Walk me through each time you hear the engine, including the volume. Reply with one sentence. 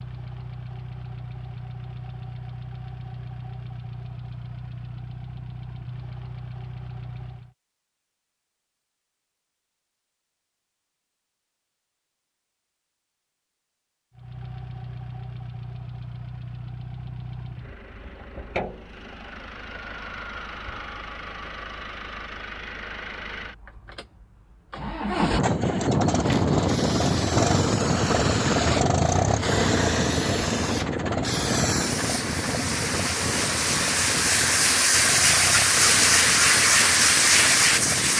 You can hear the engine from 0.0 to 7.5 s, at a steady volume; and from 14.2 to 38.1 s, getting louder then quieter.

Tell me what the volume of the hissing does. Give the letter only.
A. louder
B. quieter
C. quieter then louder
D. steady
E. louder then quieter
A.